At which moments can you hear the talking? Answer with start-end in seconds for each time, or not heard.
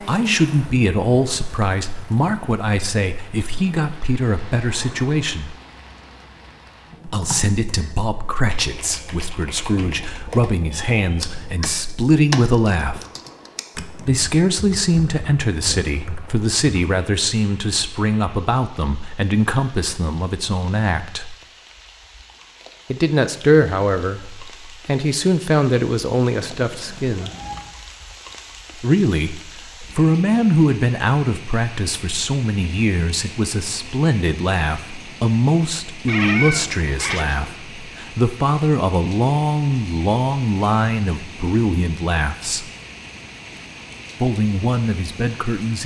0.1-5.5, 7.0-13.1, 14.1-21.4, 22.9-27.3, 28.8-42.6, 44.2-45.8.